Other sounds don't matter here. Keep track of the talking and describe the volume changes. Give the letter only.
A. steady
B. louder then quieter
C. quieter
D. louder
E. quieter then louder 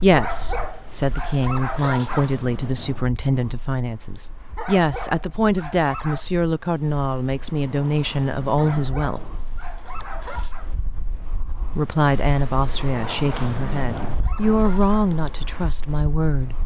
A.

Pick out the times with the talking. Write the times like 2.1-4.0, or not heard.
0.0-9.2, 11.8-16.6.